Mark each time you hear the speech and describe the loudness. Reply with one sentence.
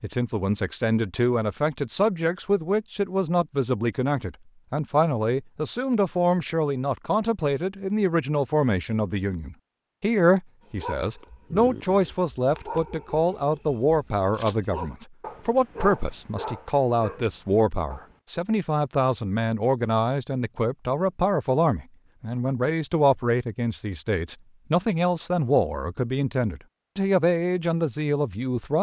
You can hear the speech from 0.0 to 28.7 s, at a steady volume.